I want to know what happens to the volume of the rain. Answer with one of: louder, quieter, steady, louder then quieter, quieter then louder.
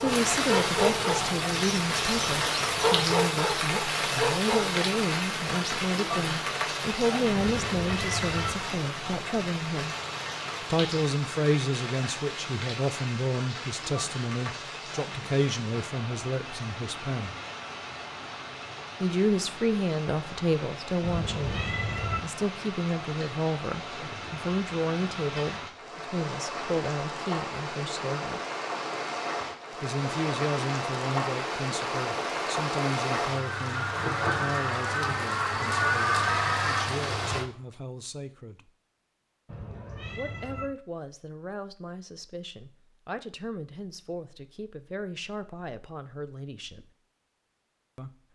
quieter then louder.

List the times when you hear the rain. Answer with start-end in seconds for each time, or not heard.
0.0-37.5.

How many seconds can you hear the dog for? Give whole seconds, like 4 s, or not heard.
5 s.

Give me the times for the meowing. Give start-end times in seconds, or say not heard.
7.3-8.6, 21.0-22.2, 39.5-40.7.